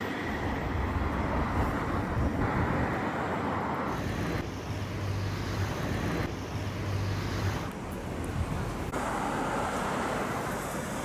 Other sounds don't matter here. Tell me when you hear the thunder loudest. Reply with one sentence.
The volume of the thunder peaks at 2 seconds.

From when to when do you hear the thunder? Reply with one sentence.
The thunder can be heard from 0.4 to 3.0 s.